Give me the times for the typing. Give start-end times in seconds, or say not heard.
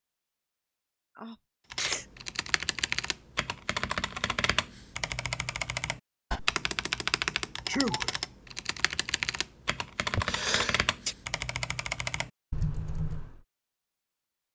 1.7-13.4.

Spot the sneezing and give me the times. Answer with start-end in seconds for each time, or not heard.
1.1-2.0, 7.7-8.2, 10.2-11.2.